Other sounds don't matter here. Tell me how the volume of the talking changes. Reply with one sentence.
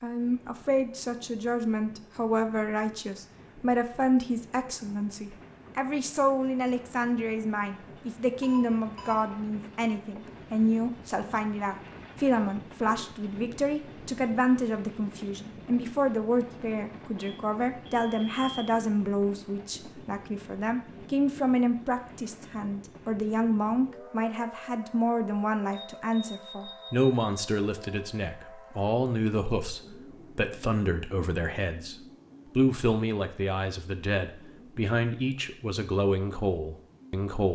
The loudness of the talking stays about the same.